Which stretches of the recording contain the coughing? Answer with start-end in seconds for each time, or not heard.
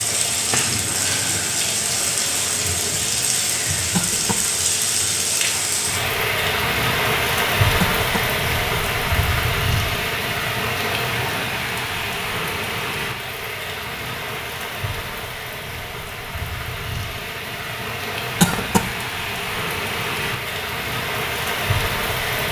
4.0-4.5, 7.8-8.3, 18.4-18.9.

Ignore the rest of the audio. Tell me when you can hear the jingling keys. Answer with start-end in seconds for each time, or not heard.
not heard.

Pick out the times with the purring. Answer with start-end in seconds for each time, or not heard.
not heard.